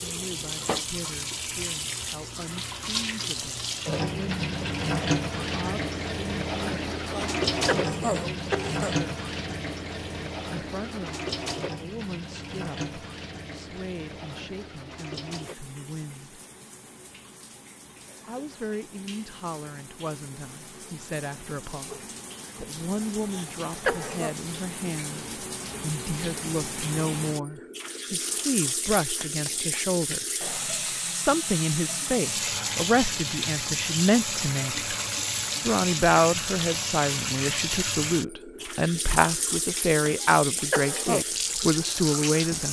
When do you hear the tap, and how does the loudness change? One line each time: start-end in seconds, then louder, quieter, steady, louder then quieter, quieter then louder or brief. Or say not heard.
0.0-42.6 quieter then louder.